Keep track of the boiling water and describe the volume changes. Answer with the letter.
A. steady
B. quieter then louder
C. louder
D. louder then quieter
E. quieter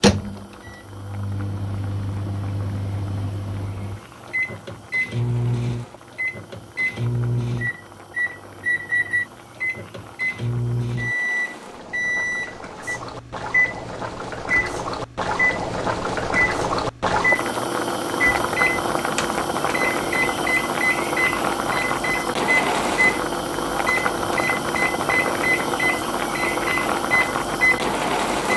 C.